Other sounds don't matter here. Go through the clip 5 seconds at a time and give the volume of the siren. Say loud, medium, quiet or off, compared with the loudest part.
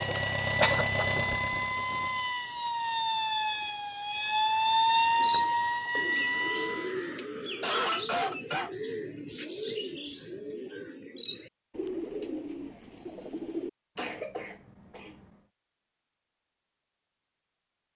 loud, loud, off, off.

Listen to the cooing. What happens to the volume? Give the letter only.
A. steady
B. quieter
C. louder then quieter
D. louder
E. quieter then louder
A.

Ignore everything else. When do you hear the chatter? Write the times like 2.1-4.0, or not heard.
not heard.